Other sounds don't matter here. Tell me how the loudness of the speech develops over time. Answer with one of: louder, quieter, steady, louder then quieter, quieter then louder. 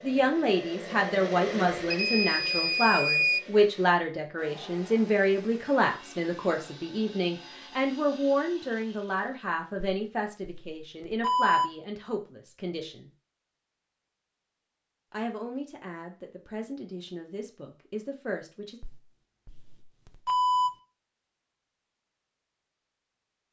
quieter.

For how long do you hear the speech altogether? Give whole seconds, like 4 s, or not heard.
17 s.